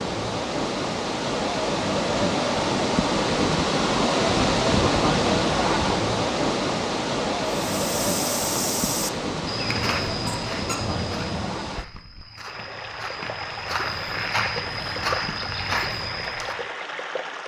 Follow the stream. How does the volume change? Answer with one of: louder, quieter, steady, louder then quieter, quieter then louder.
quieter.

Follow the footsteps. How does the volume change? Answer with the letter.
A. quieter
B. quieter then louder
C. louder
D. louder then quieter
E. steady
B.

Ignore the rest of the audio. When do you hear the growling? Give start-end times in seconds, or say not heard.
9.6-11.6.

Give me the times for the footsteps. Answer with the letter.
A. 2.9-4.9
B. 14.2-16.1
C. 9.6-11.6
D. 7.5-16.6
D.